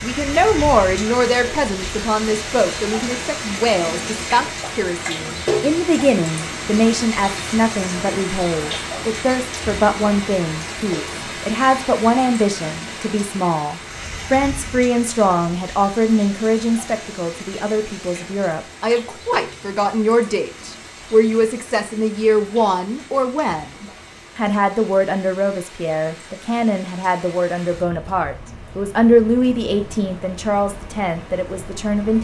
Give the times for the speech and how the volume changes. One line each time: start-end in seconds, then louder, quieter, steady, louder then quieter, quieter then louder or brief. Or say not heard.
0.0-32.2 steady.